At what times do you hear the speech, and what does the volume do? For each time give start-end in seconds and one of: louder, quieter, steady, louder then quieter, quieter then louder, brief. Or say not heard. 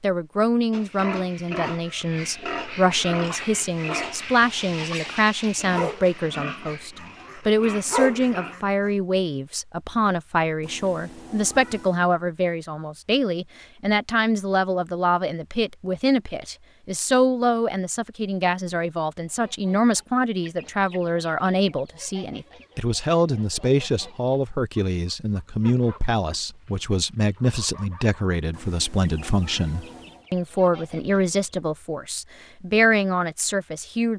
0.0-34.1 steady.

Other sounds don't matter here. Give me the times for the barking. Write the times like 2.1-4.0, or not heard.
3.2-8.9.